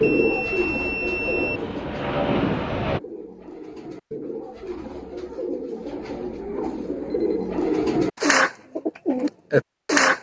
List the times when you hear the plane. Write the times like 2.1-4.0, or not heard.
0.0-3.0.